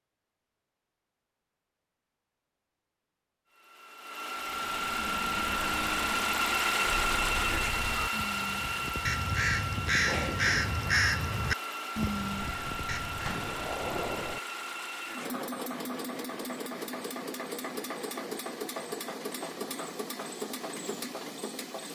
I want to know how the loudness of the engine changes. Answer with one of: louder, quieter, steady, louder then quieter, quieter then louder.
quieter.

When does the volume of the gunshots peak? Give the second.
14 s.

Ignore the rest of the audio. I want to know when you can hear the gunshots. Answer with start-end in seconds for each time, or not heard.
12.4-14.4.